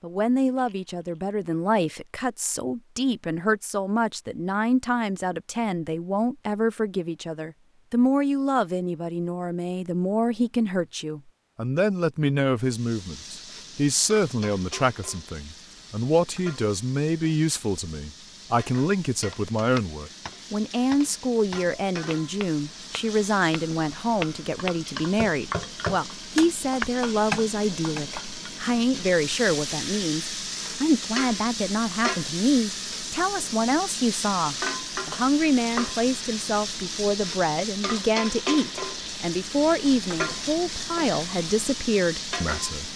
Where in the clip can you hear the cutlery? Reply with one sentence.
You can't hear the cutlery here.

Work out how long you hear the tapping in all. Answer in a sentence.
The tapping can be heard for 9 seconds in total.